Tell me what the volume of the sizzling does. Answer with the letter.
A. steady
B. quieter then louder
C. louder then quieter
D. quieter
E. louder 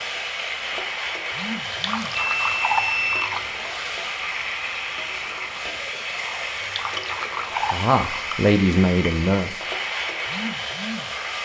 A.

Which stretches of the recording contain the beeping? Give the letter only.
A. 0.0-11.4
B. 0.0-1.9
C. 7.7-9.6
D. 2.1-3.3
D.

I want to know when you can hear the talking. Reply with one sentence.
You can hear the talking from 7.7 to 9.6 s.